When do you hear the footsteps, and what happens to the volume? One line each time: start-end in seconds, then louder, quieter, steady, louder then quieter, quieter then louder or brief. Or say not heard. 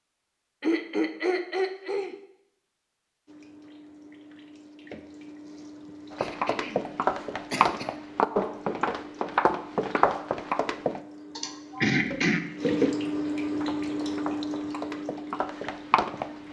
6.1-11.0 steady
13.6-16.4 brief.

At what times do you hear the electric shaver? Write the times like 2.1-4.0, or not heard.
not heard.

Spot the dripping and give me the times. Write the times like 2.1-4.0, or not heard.
3.2-16.4.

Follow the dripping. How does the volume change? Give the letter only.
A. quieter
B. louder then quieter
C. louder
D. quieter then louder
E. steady
C.